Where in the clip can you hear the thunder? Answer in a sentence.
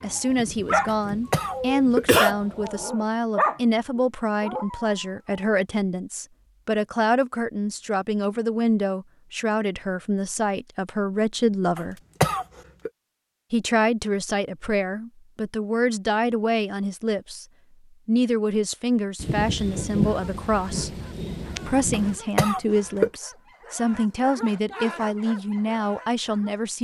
The thunder can be heard from 0.2 to 2.9 s and from 19.1 to 22.2 s.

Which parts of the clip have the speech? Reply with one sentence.
You can hear the speech from 0.0 to 11.9 s, from 13.5 to 17.4 s, from 18.1 to 20.9 s and from 21.6 to 26.7 s.